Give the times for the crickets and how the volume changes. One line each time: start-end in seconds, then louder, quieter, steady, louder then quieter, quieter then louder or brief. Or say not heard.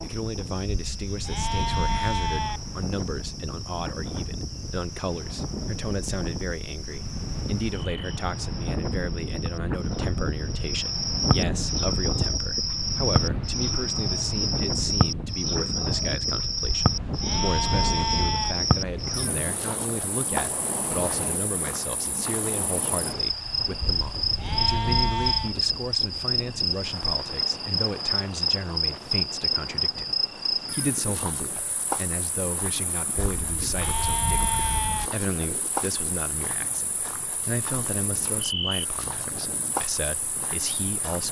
0.0-41.2 louder then quieter.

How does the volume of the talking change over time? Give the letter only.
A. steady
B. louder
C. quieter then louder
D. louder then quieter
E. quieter
A.